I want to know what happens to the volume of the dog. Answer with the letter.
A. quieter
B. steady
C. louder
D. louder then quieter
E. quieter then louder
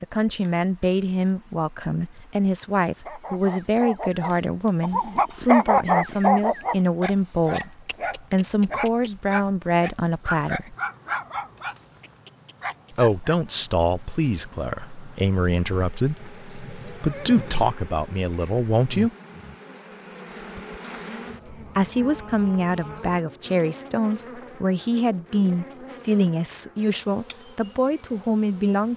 D.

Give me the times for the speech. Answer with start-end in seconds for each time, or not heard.
0.0-10.8, 12.9-19.1, 21.8-28.9.